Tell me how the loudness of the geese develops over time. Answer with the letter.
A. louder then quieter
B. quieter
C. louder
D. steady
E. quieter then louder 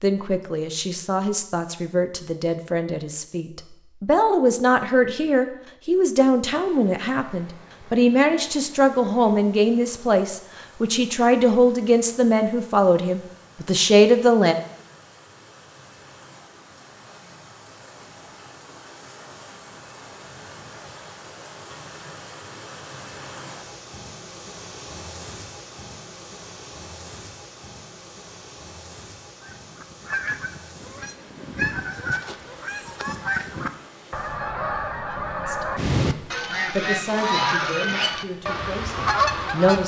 C.